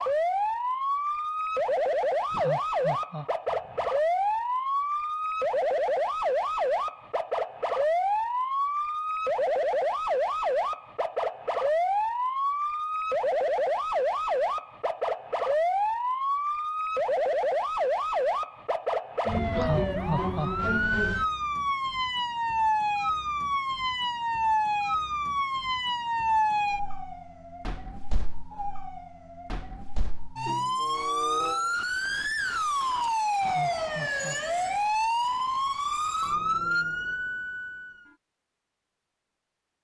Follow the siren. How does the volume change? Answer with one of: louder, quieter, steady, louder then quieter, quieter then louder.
steady.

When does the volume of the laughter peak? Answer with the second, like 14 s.
20 s.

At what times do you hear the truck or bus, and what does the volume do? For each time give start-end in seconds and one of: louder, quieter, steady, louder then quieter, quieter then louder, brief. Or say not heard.
not heard.